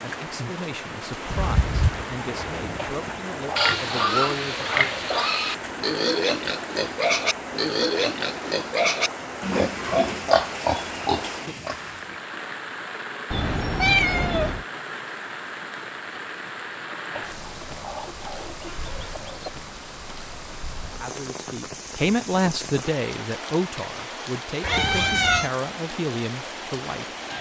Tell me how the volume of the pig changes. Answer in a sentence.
The volume of the pig stays about the same.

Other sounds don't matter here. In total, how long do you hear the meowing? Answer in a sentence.
You can hear the meowing for 3 seconds altogether.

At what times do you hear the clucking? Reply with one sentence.
You can hear the clucking from 2.8 to 5.3 s and from 17.1 to 19.6 s.